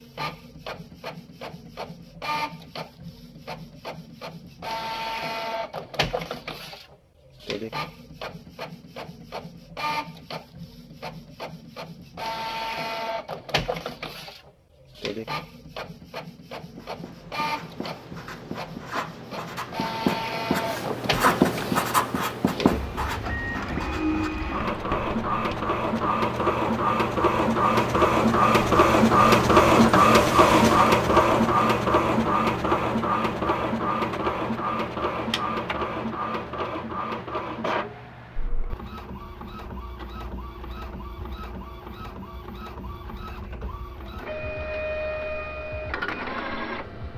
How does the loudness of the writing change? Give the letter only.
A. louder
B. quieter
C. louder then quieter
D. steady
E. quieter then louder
C.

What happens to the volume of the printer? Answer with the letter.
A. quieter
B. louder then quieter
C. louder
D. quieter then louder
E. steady
B.